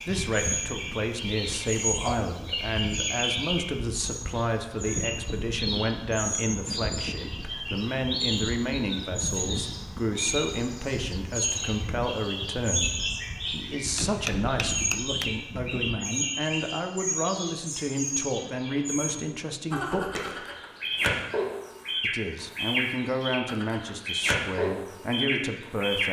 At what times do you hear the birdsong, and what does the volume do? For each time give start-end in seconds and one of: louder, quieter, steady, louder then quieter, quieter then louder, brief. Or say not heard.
0.0-26.0 steady.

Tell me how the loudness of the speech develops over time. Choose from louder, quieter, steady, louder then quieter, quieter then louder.
steady.